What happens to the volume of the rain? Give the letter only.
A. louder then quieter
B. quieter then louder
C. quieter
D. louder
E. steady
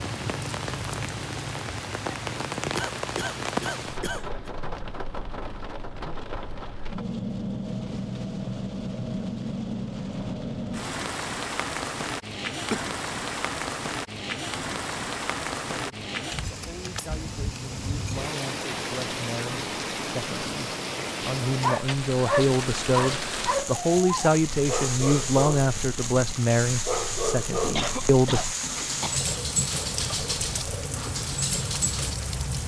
E.